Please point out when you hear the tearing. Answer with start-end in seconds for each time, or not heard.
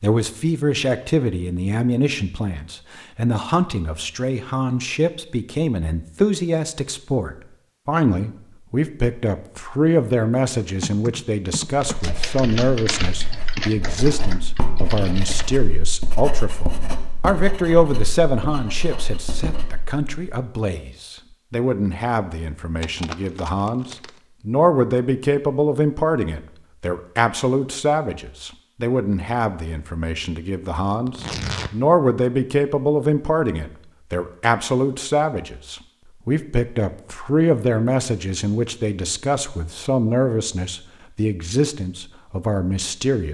11.8-12.2, 22.8-24.2, 31.1-31.7.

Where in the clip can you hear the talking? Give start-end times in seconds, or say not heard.
0.0-43.2.